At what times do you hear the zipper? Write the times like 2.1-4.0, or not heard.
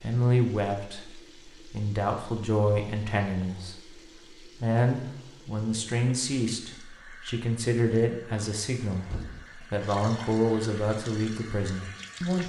not heard.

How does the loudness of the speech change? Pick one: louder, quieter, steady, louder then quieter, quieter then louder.
steady.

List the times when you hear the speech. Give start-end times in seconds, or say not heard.
0.0-12.4.